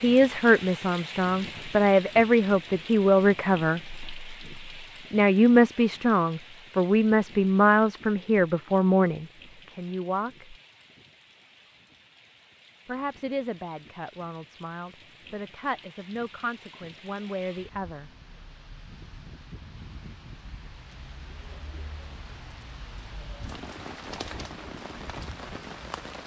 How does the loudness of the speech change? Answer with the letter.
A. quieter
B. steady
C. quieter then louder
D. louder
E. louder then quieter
A.